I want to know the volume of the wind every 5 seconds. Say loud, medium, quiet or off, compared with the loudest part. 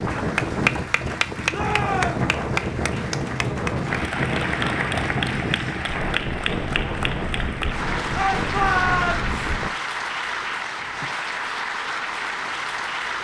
loud, loud, off.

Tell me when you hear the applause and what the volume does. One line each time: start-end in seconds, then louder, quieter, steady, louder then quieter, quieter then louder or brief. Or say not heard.
0.0-13.1 steady.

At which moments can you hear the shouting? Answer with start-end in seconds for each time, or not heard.
1.5-2.3, 8.2-9.2.